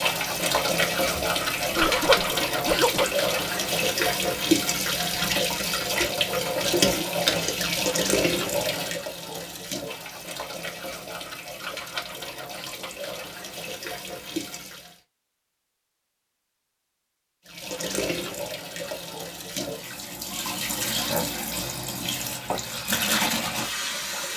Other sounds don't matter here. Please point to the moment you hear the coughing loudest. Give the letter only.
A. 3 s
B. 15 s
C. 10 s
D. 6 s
A.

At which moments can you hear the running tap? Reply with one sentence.
The running tap can be heard from 0.0 to 15.0 s and from 17.4 to 24.3 s.